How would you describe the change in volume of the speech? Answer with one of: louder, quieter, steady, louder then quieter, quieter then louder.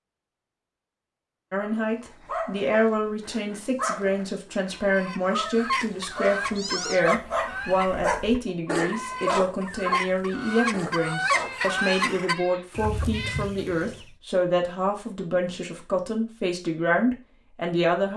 steady.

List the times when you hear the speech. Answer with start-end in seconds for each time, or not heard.
1.5-18.1.